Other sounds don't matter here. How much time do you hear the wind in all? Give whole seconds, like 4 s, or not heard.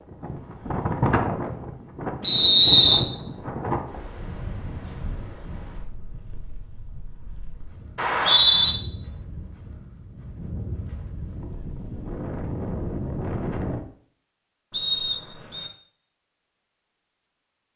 14 s.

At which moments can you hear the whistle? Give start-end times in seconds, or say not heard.
2.2-3.0, 8.0-8.8, 14.7-15.7.